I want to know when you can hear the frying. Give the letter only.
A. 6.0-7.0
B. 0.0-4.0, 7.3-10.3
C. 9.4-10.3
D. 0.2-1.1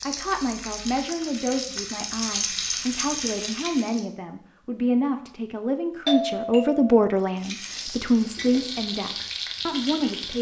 B.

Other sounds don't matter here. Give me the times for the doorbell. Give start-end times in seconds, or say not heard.
6.0-7.0.